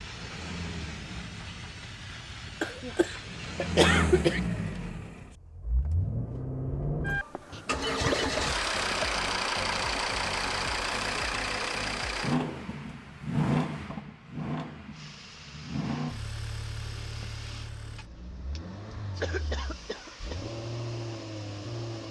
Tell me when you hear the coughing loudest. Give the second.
4 s.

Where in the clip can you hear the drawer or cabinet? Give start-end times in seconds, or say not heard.
not heard.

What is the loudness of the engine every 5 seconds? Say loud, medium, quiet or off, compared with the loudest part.
loud, loud, loud, medium, medium.